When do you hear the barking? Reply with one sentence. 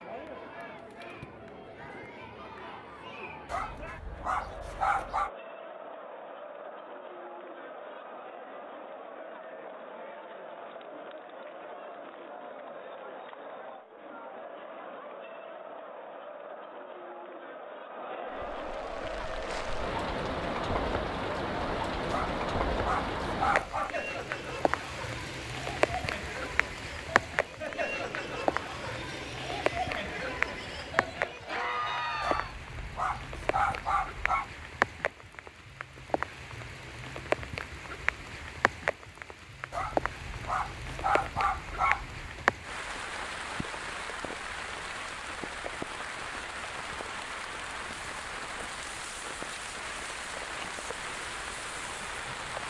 The barking can be heard from 3.5 to 5.3 s, from 22.1 to 23.9 s, from 32.2 to 34.5 s and from 39.7 to 42.5 s.